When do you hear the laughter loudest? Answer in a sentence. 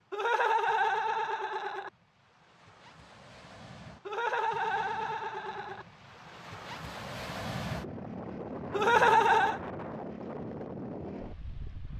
The volume of the laughter peaks at 9 seconds.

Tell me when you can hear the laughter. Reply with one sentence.
You can hear the laughter from 0.1 to 1.9 s, from 4.0 to 5.8 s and from 8.7 to 9.6 s.